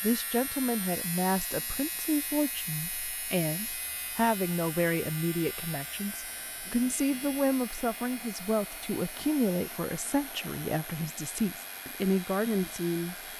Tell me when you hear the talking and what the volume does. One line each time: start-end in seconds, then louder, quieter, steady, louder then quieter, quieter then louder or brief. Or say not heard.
0.0-13.2 steady.